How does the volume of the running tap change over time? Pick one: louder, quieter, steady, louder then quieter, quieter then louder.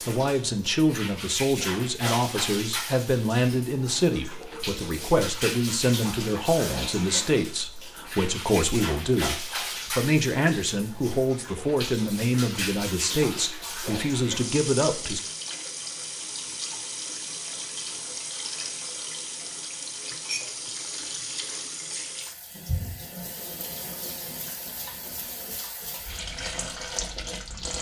steady.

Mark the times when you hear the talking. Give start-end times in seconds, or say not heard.
0.1-15.2.